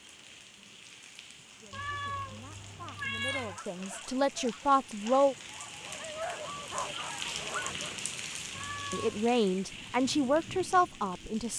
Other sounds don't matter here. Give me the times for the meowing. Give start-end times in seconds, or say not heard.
1.7-3.6, 8.5-9.3.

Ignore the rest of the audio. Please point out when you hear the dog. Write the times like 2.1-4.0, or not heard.
2.5-8.0.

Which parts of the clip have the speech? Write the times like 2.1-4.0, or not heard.
1.6-5.3, 8.9-11.5.